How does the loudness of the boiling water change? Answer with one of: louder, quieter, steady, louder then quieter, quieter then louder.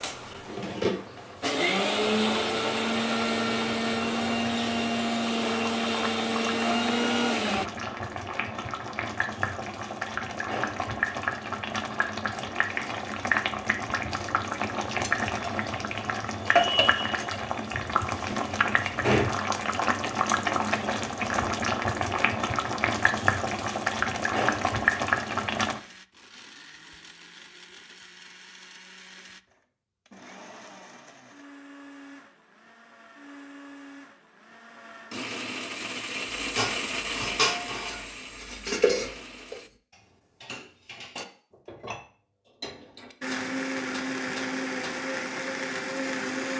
louder.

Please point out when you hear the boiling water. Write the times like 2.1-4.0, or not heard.
0.0-25.8.